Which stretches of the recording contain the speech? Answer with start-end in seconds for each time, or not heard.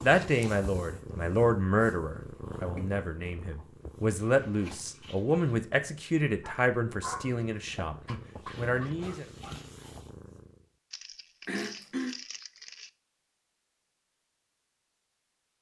0.0-9.2.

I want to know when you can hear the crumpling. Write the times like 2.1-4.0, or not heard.
10.9-12.9.